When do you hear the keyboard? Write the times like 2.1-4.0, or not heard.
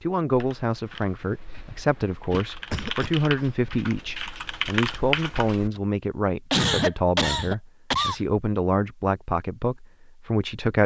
0.3-5.8.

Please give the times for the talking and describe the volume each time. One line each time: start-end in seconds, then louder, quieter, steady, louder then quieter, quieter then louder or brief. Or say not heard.
0.0-10.8 steady.